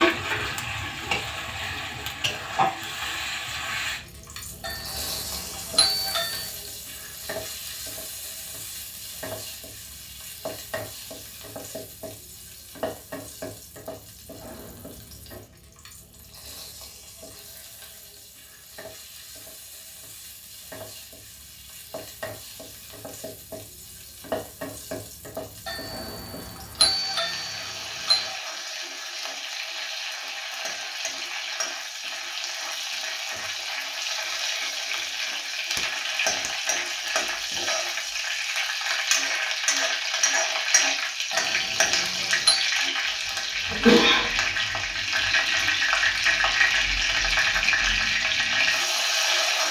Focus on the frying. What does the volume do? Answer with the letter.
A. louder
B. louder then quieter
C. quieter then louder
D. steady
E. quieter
C.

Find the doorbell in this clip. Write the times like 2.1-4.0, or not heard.
4.6-6.5, 25.6-28.4, 41.3-42.7.